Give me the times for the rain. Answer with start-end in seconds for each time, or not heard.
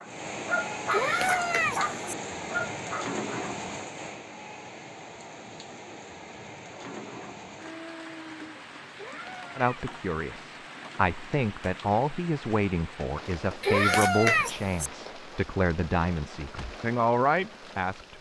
0.0-18.1.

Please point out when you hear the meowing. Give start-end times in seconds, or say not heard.
0.9-1.9, 8.9-9.8, 13.6-14.9.